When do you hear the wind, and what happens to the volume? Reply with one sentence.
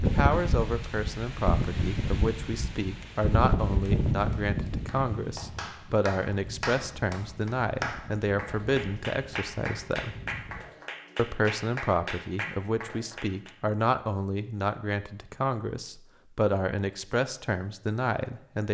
The wind can be heard from 0.0 to 10.7 s, getting quieter.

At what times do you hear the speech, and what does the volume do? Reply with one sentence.
You can hear the speech from 0.0 to 10.2 s, at a steady volume; and from 11.2 to 18.6 s, at a steady volume.